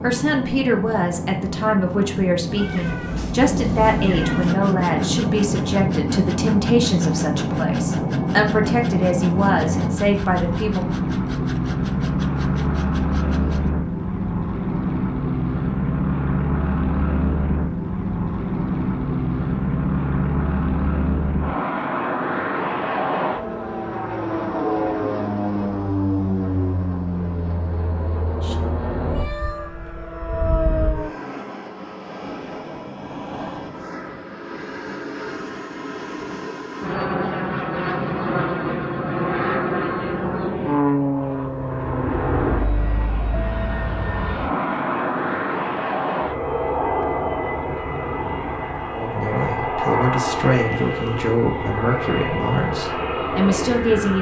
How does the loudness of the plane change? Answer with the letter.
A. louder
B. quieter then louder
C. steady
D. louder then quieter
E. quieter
C.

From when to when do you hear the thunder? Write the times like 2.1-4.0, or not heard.
32.2-34.2.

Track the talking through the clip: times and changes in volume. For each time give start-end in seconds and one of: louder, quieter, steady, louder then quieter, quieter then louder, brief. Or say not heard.
0.0-10.8 steady
48.9-54.1 steady.